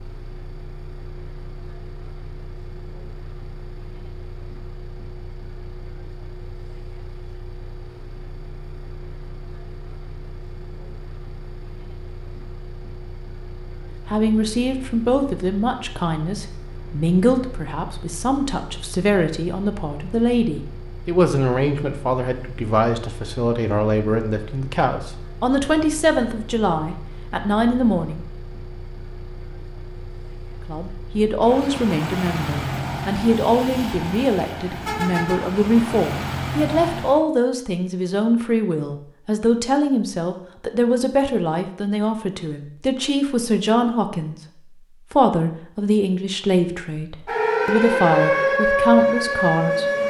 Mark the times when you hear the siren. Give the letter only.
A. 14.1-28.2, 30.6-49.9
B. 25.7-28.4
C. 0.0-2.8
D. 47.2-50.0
D.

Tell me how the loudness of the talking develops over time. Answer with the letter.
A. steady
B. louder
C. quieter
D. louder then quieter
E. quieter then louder
A.